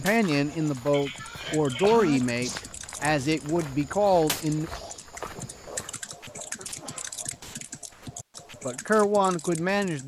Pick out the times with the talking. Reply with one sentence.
The talking can be heard from 0.0 to 4.7 s and from 8.7 to 10.0 s.